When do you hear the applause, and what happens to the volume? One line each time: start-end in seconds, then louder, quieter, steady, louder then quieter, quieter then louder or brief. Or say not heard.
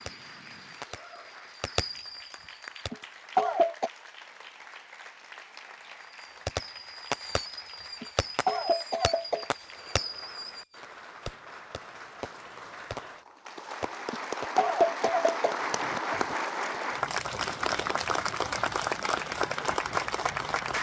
0.0-20.7 louder.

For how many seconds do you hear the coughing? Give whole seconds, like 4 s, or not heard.
5 s.